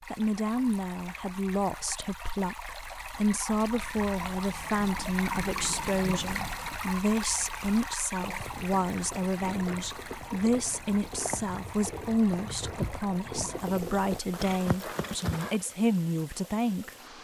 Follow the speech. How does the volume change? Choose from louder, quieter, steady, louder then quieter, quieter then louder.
steady.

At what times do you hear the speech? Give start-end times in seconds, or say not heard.
0.1-16.9.